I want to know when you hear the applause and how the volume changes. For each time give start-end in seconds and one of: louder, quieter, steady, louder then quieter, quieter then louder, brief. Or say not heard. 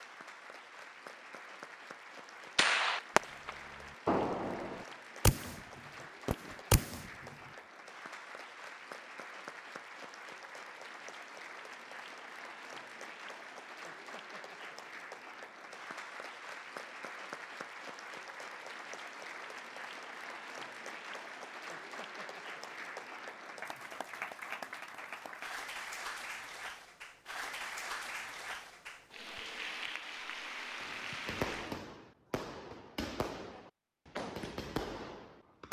0.0-31.8 louder.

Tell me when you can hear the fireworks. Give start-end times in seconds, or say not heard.
2.5-7.3, 30.8-35.6.